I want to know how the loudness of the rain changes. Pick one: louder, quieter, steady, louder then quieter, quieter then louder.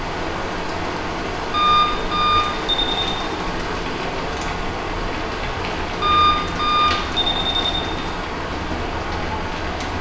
steady.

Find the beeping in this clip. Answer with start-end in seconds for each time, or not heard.
1.5-3.1, 6.0-7.9.